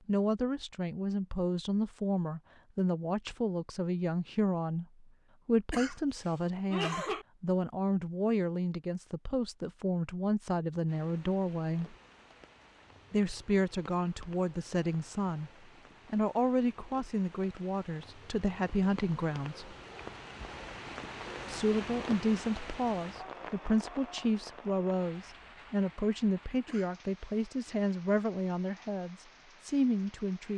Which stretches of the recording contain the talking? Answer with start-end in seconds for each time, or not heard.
0.1-11.9, 13.1-15.5, 16.1-19.8, 21.4-30.5.